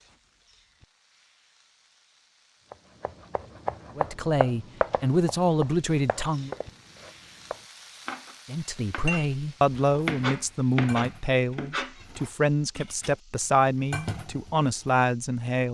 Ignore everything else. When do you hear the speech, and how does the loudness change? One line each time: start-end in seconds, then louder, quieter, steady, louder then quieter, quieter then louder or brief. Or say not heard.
4.0-6.5 brief
8.4-15.6 steady.